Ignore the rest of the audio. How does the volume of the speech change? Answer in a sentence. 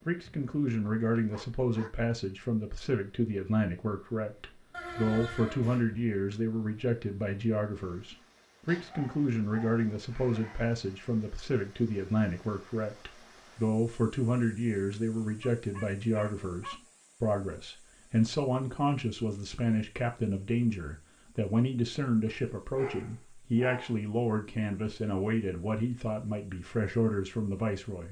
The volume of the speech stays about the same.